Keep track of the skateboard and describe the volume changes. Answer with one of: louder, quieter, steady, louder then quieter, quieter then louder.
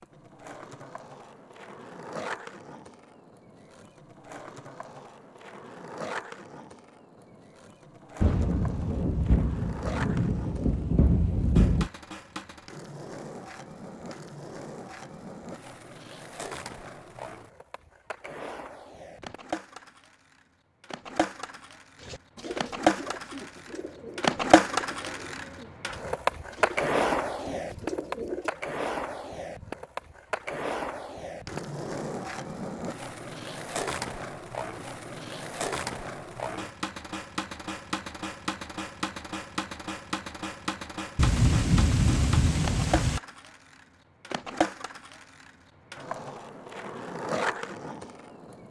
louder then quieter.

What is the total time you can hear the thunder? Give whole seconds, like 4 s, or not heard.
6 s.